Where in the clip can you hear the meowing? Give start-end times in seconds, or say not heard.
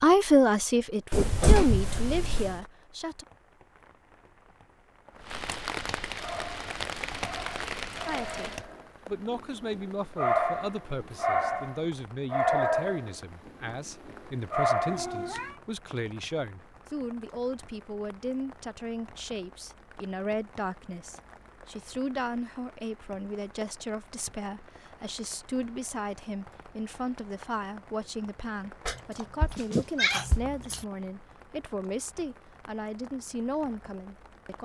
1.1-2.5, 14.8-15.6, 28.9-30.9.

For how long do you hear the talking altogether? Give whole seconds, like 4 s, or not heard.
30 s.